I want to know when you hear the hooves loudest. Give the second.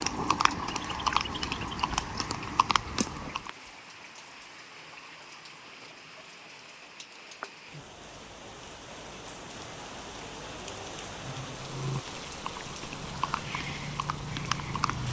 1 s.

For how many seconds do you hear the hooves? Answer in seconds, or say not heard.
7 s.